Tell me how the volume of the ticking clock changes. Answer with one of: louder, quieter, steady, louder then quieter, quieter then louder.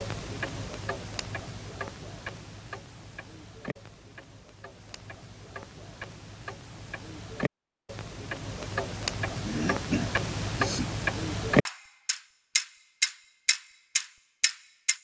quieter then louder.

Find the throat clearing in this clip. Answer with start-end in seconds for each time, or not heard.
9.4-10.8.